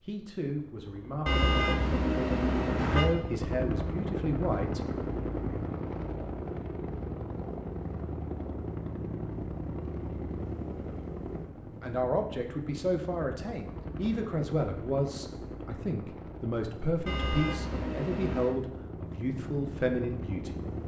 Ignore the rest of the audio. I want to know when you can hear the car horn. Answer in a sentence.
The car horn can be heard from 1.2 to 3.1 s and from 17.1 to 18.6 s.